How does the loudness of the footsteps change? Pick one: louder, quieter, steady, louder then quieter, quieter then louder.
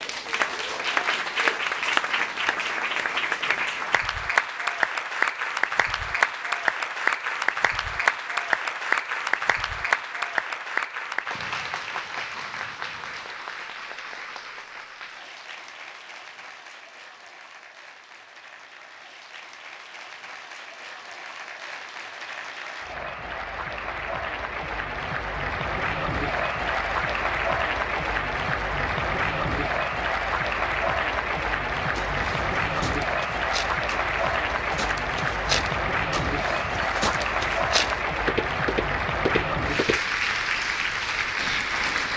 louder.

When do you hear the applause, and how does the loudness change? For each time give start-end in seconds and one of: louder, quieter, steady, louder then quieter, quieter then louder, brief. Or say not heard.
0.0-42.1 quieter then louder.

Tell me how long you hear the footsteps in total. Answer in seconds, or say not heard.
8 s.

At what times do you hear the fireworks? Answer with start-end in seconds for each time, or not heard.
not heard.